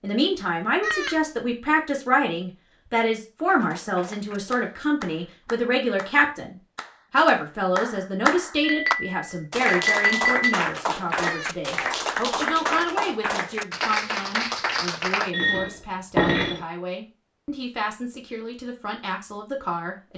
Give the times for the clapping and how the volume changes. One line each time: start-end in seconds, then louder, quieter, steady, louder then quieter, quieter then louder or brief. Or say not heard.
3.5-15.3 louder.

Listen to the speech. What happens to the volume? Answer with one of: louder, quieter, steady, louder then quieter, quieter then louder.
quieter.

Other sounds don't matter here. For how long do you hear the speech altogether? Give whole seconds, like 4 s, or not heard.
20 s.